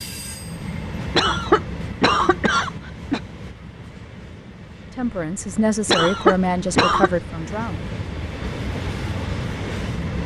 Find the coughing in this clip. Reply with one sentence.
The coughing can be heard from 1.1 to 3.2 s and from 5.8 to 7.1 s.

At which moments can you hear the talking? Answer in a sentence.
You can hear the talking from 4.9 to 7.8 s.